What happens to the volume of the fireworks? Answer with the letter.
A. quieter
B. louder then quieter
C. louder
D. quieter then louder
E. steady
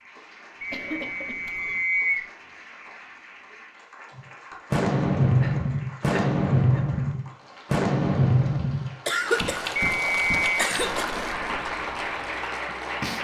A.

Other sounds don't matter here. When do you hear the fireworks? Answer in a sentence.
The fireworks can be heard from 4.2 to 12.5 s.